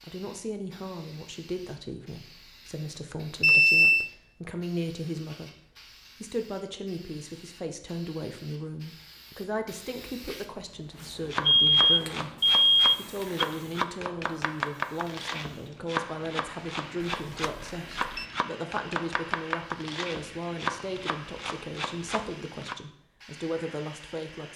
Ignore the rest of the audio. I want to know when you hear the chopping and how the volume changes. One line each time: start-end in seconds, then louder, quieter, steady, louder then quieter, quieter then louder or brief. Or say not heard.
11.2-22.8 steady.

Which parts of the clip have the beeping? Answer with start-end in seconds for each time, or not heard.
3.4-4.1, 11.4-13.4, 17.1-18.3.